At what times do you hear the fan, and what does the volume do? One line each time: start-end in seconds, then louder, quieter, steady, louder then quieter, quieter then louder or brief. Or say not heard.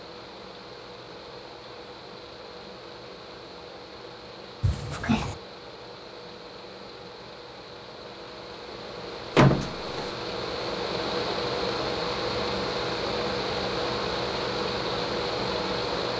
0.0-16.1 louder.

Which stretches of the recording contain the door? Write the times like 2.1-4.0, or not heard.
4.6-5.3, 9.3-10.1.